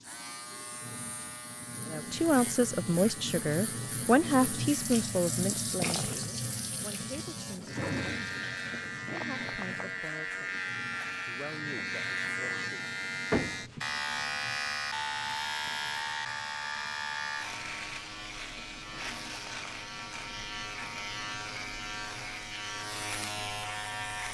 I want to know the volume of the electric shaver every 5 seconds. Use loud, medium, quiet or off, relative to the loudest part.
medium, medium, loud, loud, loud.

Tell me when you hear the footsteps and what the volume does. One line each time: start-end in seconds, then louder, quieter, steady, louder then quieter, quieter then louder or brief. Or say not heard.
not heard.